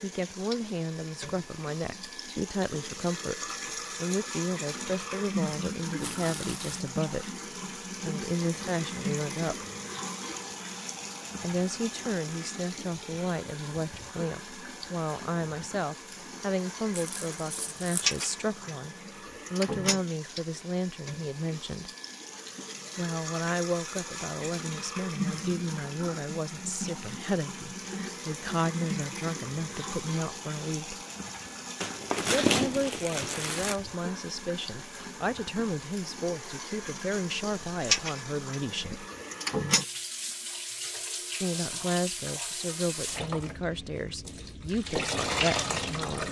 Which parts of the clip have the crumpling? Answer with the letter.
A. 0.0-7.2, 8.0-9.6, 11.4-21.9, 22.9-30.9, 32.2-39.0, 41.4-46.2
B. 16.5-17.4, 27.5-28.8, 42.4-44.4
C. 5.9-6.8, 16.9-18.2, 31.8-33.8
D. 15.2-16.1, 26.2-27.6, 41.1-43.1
C.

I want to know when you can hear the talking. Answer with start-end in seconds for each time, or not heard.
0.0-7.2, 8.0-9.6, 11.4-21.9, 22.9-30.9, 32.2-39.0, 41.4-46.2.